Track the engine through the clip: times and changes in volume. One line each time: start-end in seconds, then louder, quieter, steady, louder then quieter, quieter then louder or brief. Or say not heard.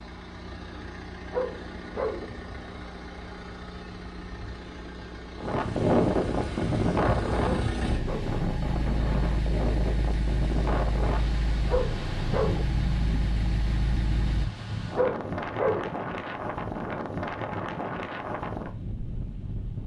0.0-14.5 louder.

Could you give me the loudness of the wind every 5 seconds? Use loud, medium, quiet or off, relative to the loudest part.
off, loud, medium, medium.